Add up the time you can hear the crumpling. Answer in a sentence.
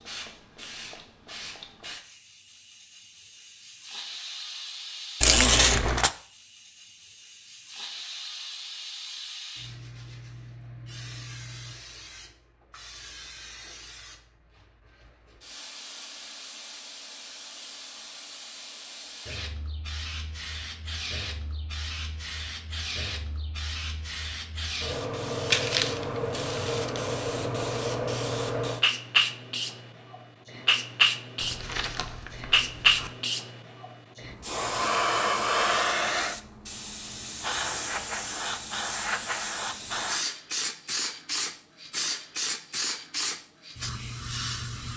The crumpling can be heard for 4 seconds in total.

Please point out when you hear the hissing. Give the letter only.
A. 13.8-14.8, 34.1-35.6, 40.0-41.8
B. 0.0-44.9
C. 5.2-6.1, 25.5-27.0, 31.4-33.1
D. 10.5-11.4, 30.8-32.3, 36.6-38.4
B.